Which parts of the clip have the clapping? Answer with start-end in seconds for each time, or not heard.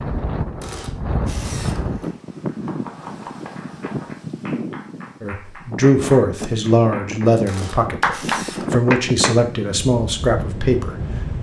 2.5-9.3.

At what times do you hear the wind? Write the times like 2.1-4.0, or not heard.
0.0-11.3.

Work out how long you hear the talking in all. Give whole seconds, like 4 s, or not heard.
6 s.